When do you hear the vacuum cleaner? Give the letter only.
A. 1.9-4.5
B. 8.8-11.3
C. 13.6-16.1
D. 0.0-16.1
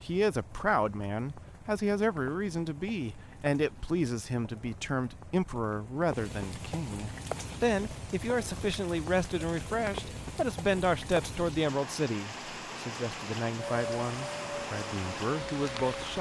C.